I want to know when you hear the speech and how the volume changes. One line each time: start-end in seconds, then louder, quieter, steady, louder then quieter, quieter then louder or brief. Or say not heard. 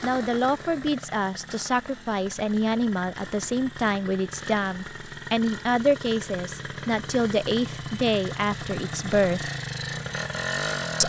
0.0-9.5 steady.